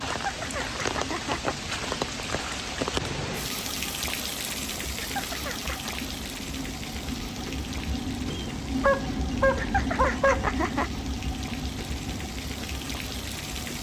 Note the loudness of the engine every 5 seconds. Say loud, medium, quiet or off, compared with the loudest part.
medium, loud, loud.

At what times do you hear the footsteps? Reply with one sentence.
The footsteps can't be heard in this clip.